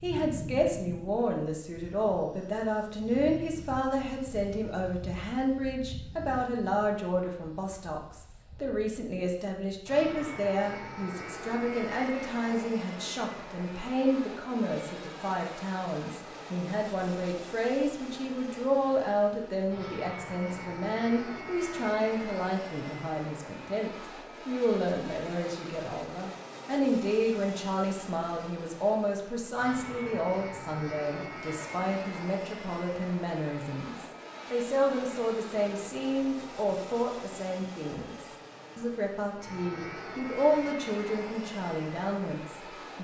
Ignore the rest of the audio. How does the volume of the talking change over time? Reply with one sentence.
The volume of the talking stays about the same.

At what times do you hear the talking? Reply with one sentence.
You can hear the talking from 0.0 to 43.0 s.